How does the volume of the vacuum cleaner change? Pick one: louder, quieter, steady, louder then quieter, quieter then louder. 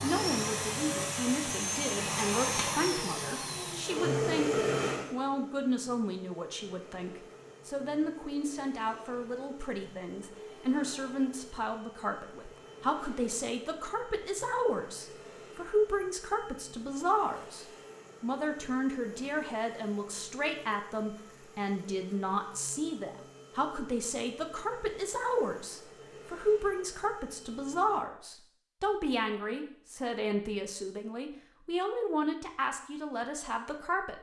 quieter.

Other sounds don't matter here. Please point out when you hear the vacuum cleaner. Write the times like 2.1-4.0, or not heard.
0.0-28.0.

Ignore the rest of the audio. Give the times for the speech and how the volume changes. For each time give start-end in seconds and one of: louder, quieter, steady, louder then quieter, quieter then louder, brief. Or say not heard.
0.0-34.1 steady.